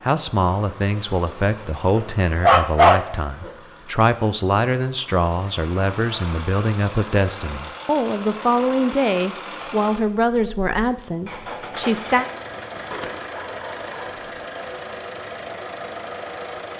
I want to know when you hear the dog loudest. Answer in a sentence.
The volume of the dog peaks at 3 seconds.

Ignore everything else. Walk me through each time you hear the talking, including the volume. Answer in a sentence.
You can hear the talking from 0.0 to 12.2 s, at a steady volume.